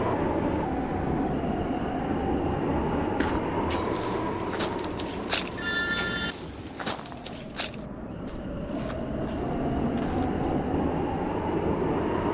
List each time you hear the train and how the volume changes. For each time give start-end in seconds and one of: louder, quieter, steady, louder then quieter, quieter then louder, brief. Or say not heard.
0.0-12.3 quieter then louder.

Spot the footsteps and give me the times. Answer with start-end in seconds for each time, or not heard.
3.1-10.6.